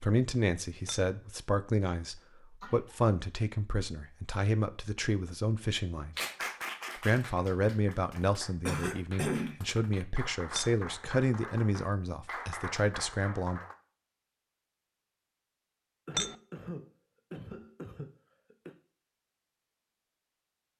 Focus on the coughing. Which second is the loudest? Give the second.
9 s.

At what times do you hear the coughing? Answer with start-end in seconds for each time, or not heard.
2.1-3.0, 8.7-9.6, 16.1-18.8.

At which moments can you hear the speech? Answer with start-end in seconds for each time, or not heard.
0.0-6.2, 7.0-13.6.